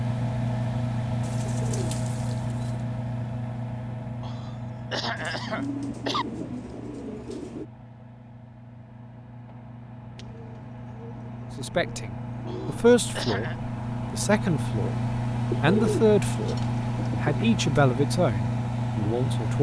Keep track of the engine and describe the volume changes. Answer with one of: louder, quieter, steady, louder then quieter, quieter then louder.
quieter then louder.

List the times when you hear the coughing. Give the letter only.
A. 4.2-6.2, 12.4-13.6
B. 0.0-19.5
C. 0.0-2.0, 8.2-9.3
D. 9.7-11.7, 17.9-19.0
A.